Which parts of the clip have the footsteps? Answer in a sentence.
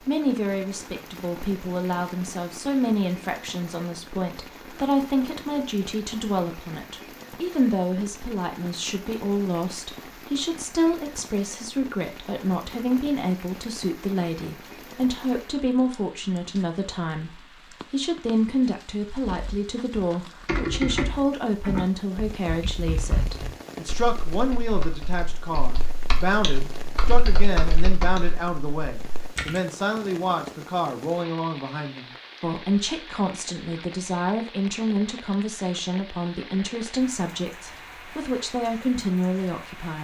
You can't hear the footsteps here.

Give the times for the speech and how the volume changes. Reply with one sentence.
You can hear the speech from 0.1 to 39.9 s, at a steady volume.